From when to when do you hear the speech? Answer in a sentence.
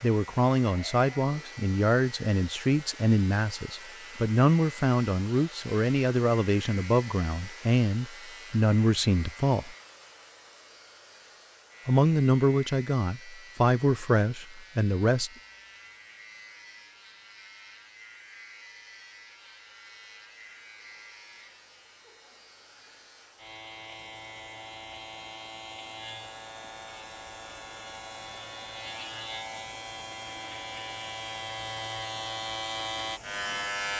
You can hear the speech from 0.0 to 9.8 s and from 11.8 to 15.3 s.